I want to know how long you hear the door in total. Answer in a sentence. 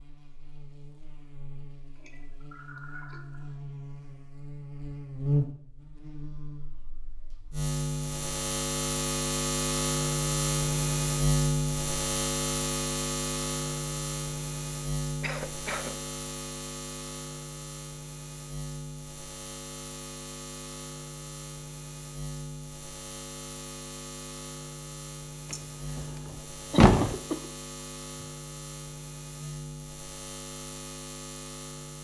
You can hear the door for 2 seconds altogether.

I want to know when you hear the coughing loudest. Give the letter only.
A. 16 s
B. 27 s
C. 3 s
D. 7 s
B.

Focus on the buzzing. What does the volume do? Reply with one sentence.
The volume of the buzzing goes up, then down.